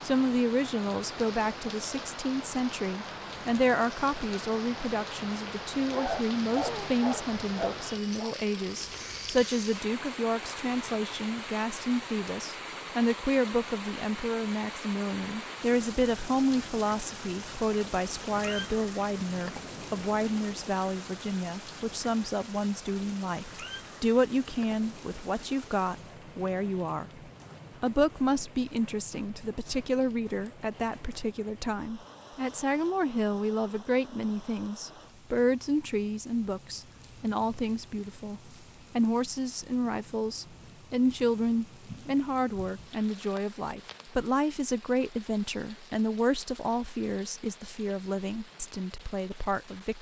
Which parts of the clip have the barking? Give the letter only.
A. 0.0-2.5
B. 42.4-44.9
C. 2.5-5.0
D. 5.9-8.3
D.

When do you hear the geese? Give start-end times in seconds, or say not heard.
not heard.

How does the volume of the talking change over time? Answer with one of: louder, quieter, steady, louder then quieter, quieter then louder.
steady.